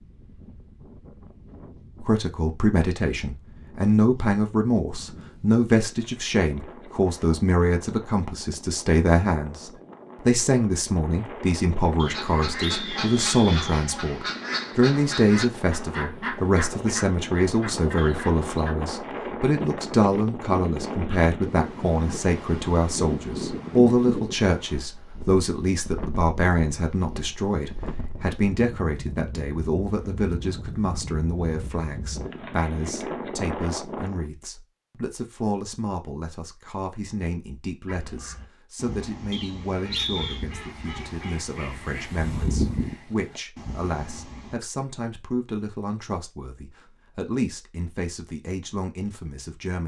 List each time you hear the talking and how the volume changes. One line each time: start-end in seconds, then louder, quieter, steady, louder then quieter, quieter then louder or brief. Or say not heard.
2.0-49.8 quieter.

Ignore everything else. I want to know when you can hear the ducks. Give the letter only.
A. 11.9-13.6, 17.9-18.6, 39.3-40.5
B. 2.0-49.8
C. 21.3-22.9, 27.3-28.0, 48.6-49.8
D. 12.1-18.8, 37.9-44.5
D.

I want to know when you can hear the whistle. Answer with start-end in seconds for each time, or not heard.
11.9-13.6, 17.9-18.6, 39.3-40.5.